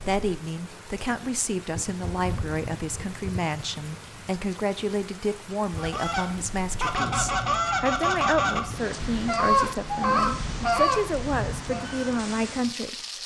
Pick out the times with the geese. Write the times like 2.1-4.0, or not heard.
5.7-11.8.